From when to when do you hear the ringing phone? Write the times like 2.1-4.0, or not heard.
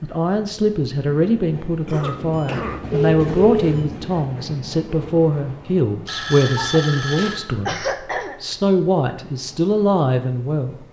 2.4-3.8, 6.0-7.4.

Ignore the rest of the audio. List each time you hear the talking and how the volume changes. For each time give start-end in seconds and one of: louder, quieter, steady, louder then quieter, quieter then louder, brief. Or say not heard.
0.0-10.8 steady.